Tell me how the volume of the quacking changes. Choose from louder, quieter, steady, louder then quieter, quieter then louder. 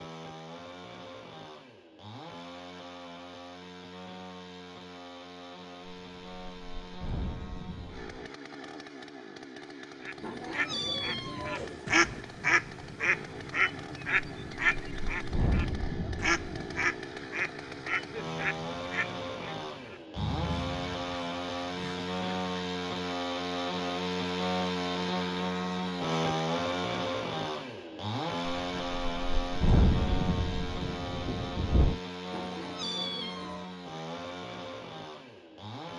quieter.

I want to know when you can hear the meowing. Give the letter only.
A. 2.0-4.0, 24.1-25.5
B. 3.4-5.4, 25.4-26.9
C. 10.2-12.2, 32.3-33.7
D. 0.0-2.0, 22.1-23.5
C.